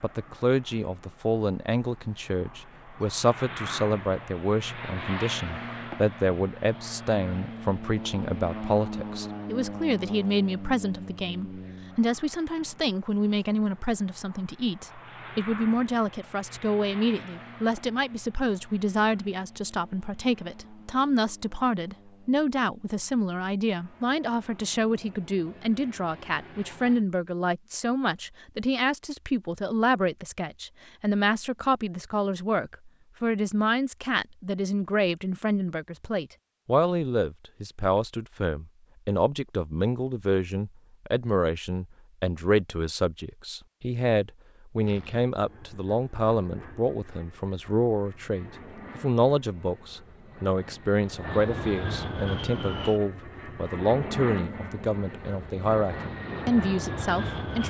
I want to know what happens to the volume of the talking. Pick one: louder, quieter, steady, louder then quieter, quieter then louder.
steady.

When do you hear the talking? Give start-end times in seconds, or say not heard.
0.0-57.6.